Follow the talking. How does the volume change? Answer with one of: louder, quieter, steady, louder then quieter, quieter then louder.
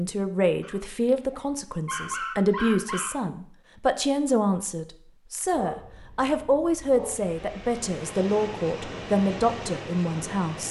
steady.